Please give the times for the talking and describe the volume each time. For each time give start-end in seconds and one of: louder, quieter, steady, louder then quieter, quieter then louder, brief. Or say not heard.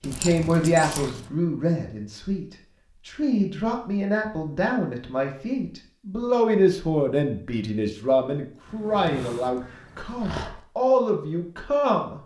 0.0-12.2 steady.